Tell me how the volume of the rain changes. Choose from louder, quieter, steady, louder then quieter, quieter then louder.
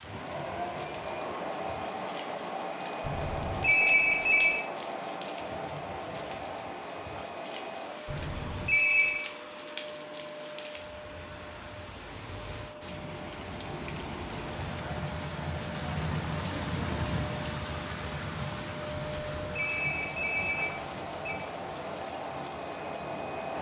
louder then quieter.